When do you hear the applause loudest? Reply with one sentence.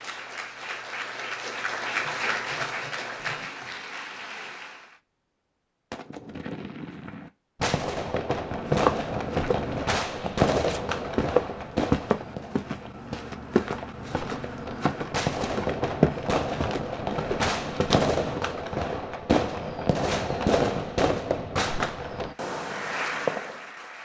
The volume of the applause peaks at 2 seconds.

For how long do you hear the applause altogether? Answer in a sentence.
The applause can be heard for 7 seconds in total.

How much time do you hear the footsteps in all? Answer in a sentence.
You can hear the footsteps for 10 seconds altogether.